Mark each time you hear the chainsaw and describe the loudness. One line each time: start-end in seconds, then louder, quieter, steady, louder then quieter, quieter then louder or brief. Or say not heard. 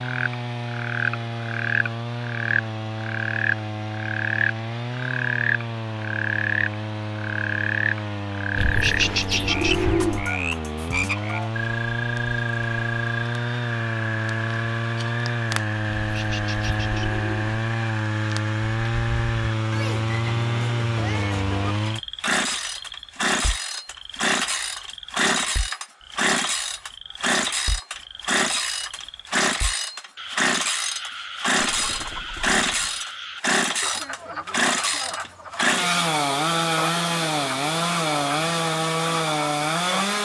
0.0-40.2 louder.